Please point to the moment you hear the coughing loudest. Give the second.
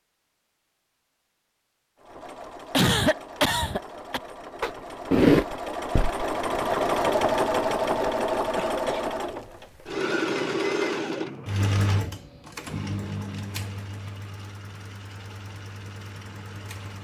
3 s.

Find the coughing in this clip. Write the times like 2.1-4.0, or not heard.
2.7-4.2, 8.6-9.2.